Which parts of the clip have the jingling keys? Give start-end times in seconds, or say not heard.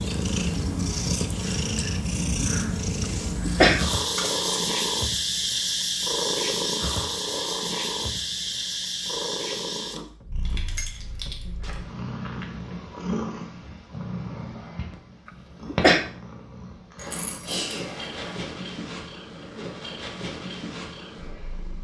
4.2-4.8, 10.4-11.8, 16.9-18.5.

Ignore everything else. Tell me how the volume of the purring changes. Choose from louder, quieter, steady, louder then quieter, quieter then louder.
quieter.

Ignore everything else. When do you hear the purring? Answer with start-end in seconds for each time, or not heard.
0.0-21.7.